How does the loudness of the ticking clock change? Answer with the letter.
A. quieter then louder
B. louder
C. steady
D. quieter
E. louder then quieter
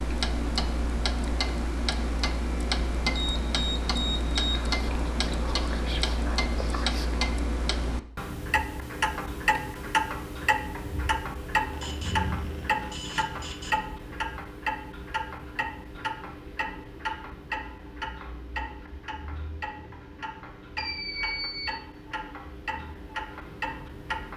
D.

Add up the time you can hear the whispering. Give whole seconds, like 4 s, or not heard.
3 s.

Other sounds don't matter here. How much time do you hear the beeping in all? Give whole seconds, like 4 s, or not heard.
5 s.